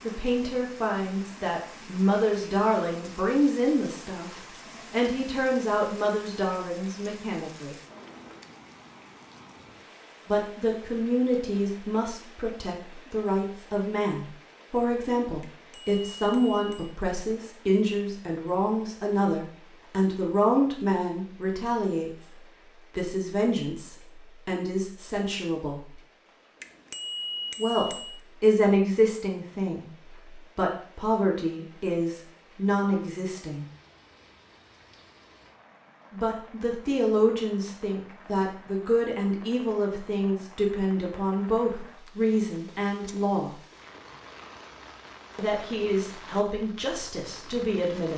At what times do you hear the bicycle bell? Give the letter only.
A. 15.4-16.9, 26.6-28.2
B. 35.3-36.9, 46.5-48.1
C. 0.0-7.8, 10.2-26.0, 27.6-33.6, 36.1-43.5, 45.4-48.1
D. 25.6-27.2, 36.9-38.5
A.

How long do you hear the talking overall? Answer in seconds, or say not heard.
40 s.